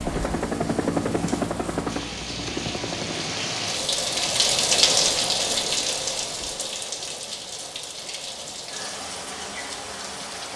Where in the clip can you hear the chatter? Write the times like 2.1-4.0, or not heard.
not heard.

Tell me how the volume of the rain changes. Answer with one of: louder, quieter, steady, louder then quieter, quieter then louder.
louder then quieter.